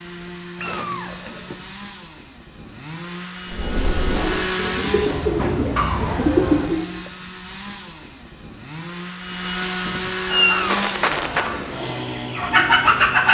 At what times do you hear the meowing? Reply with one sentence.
You can hear the meowing from 0.6 to 1.6 s, from 5.8 to 7.1 s and from 10.3 to 11.5 s.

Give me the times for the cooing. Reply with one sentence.
The cooing can be heard from 3.5 to 6.8 s and from 10.3 to 13.2 s.